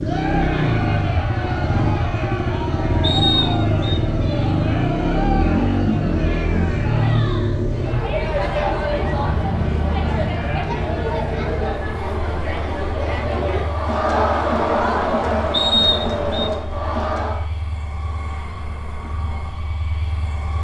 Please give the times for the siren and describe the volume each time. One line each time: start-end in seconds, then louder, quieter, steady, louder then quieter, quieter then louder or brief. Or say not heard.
not heard.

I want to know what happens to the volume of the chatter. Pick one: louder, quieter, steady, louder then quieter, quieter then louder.
louder.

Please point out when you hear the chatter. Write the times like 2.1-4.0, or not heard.
0.0-17.4.